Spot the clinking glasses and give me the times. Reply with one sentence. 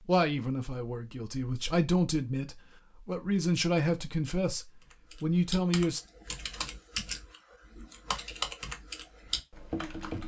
You can't hear the clinking glasses here.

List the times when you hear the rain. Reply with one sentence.
The rain can't be heard in this clip.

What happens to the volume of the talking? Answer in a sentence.
The volume of the talking goes up.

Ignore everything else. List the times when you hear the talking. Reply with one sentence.
You can hear the talking from 0.1 to 6.0 s.